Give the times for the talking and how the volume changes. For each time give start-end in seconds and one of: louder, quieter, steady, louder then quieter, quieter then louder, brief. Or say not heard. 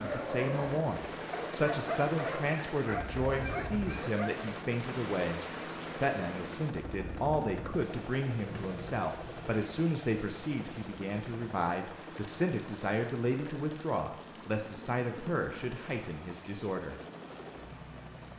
0.0-17.0 steady.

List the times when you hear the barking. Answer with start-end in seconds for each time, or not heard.
0.0-4.5.